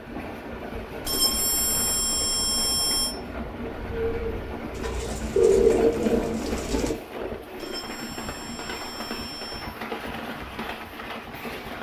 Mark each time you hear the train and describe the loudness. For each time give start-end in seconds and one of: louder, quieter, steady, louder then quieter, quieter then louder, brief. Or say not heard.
0.0-11.7 steady.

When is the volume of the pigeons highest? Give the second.
6 s.